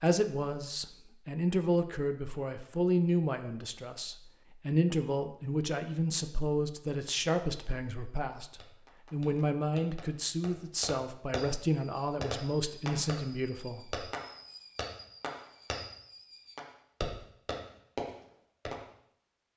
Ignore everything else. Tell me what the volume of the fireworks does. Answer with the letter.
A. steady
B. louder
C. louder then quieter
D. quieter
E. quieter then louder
B.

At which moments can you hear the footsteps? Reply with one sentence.
The footsteps can't be heard in this clip.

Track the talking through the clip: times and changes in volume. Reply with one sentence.
The talking can be heard from 0.0 to 14.1 s, at a steady volume.